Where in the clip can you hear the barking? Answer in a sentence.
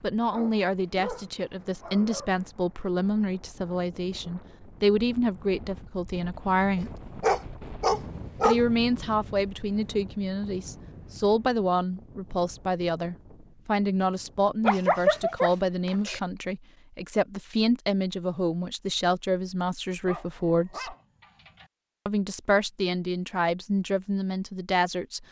You can hear the barking from 0.3 to 2.3 s, from 6.8 to 8.6 s, from 14.6 to 16.2 s and from 20.1 to 21.6 s.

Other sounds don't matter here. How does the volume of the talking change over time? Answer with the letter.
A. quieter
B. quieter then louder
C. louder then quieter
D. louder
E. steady
E.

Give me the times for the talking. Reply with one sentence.
You can hear the talking from 0.0 to 7.0 s, from 8.4 to 20.9 s and from 22.1 to 25.2 s.